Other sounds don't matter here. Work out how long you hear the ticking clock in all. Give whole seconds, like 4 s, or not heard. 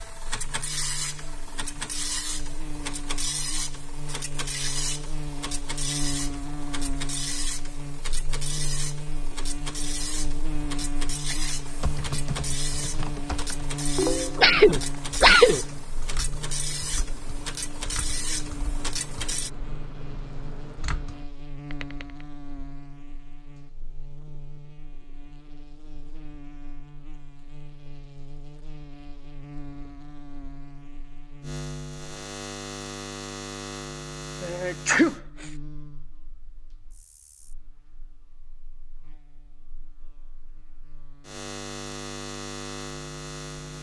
not heard.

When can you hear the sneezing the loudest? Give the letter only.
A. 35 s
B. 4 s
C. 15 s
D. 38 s
C.